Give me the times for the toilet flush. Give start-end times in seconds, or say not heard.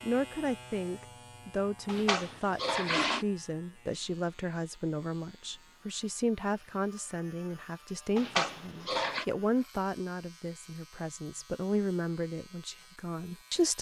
1.9-3.2, 8.2-9.2.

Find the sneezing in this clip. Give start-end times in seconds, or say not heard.
not heard.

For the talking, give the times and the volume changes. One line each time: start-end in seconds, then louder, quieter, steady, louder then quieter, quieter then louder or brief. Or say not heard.
0.0-13.7 steady.